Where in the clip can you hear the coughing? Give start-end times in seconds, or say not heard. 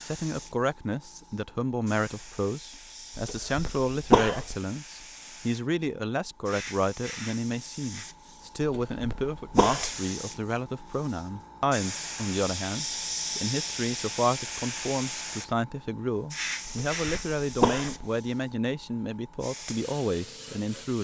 3.1-4.5, 8.6-9.9, 16.6-18.1.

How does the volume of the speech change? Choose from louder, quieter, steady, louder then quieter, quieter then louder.
steady.